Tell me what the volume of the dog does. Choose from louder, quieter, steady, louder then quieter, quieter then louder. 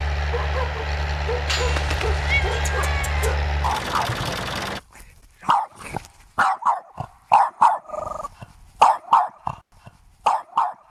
louder.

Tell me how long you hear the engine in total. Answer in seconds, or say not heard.
5 s.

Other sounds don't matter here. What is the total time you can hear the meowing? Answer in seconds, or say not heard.
2 s.